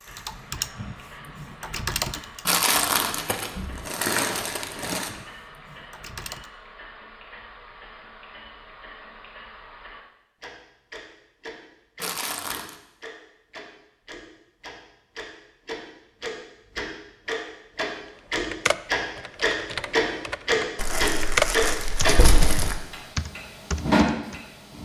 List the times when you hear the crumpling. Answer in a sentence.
You can hear the crumpling from 2.5 to 5.1 s, from 12.0 to 12.8 s and from 20.8 to 22.8 s.